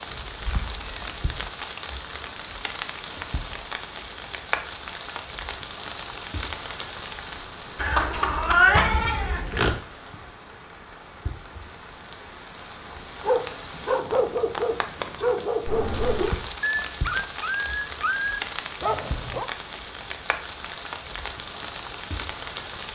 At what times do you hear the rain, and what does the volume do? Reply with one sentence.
You can hear the rain from 0.0 to 22.8 s, getting quieter then louder.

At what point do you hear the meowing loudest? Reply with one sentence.
The loudest moment of the meowing is at 9 seconds.